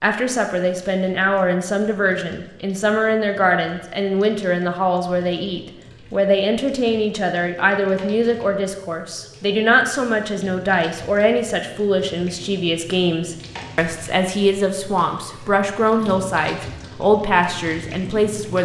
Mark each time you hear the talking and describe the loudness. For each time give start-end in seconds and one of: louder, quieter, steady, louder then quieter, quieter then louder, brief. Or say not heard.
0.0-18.5 steady.